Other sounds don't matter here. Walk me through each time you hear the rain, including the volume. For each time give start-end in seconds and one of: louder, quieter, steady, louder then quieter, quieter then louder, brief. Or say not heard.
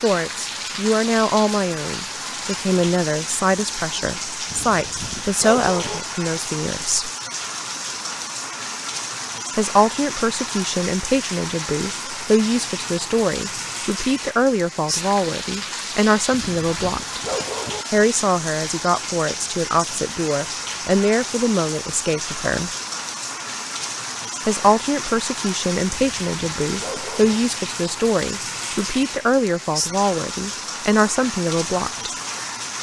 0.0-32.7 steady.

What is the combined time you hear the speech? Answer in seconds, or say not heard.
27 s.